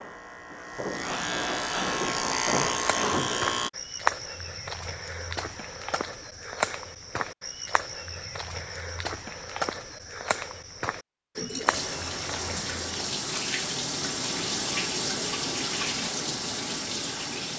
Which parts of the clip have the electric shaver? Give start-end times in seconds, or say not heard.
0.0-3.7.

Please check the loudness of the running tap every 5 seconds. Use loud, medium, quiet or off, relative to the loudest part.
off, off, loud, loud.